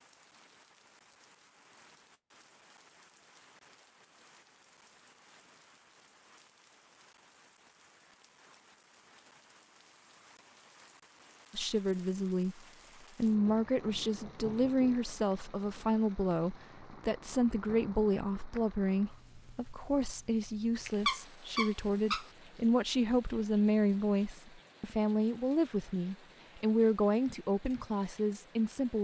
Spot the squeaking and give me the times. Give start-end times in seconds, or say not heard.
20.9-22.3.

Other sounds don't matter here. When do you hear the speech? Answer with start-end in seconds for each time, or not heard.
11.5-29.0.